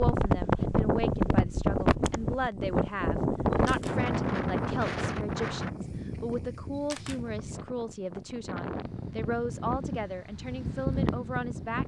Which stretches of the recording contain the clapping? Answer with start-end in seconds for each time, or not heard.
not heard.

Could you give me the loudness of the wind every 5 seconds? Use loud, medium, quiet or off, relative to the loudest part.
loud, medium, medium.